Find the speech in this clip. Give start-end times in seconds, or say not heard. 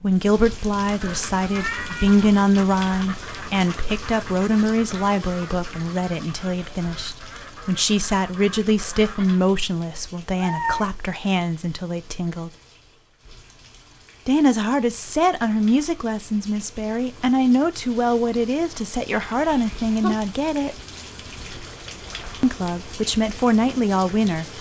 0.0-12.5, 14.2-20.8, 22.4-24.5.